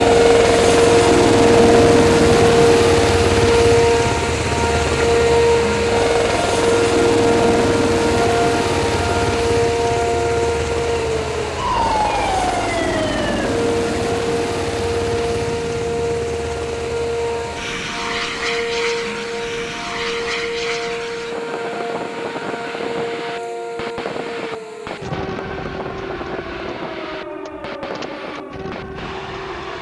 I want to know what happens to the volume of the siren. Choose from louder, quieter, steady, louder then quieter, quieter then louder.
quieter.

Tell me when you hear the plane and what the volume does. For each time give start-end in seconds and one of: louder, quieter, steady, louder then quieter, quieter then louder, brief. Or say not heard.
0.0-29.7 quieter.